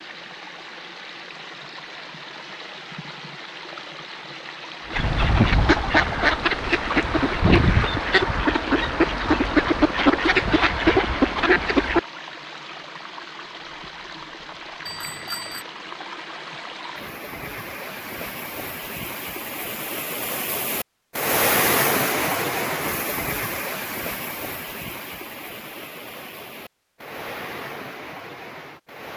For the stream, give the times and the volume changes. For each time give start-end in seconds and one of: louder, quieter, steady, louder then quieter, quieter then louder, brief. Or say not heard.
0.0-29.1 louder then quieter.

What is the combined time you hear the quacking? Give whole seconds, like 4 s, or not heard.
7 s.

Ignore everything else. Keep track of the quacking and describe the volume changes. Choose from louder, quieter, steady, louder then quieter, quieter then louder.
steady.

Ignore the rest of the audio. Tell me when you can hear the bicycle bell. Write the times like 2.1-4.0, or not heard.
14.8-15.7.